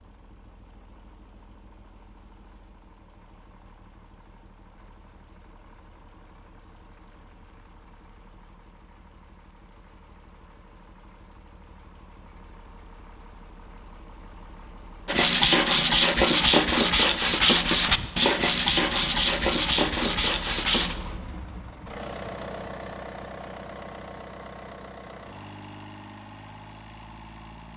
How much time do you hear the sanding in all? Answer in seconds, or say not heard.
6 s.